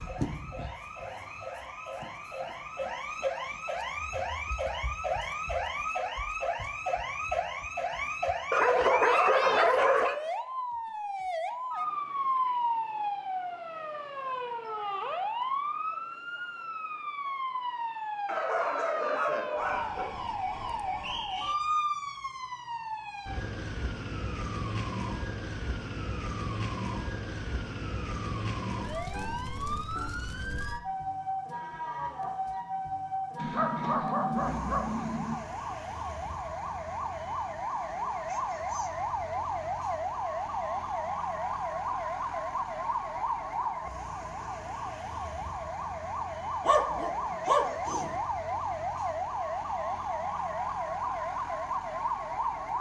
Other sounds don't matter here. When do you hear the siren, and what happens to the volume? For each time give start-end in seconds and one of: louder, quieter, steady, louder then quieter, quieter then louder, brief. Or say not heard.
0.0-52.7 steady.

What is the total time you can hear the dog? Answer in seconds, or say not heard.
7 s.